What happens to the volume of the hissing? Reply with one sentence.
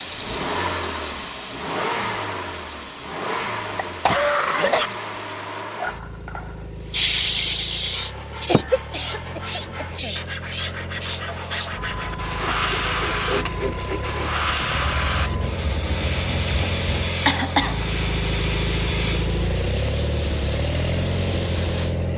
The volume of the hissing goes up, then down.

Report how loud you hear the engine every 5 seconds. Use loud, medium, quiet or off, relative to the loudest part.
loud, medium, medium, loud, loud.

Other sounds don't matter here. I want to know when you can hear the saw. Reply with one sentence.
You can hear the saw from 7.8 to 17.1 s.